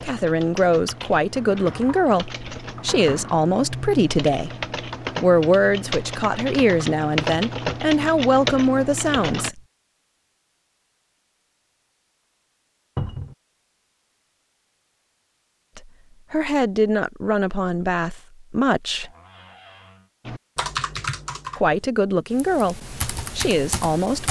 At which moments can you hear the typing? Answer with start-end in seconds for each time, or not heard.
0.0-9.5, 20.2-24.2.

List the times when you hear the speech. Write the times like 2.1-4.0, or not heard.
0.0-4.5, 5.2-9.6, 15.8-19.1, 21.6-24.2.